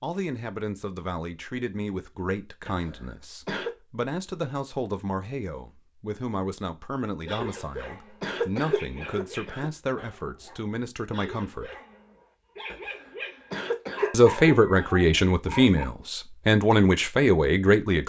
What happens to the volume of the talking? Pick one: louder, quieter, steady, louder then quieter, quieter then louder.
louder.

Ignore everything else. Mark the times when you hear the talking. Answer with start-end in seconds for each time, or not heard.
0.0-11.8, 14.1-18.0.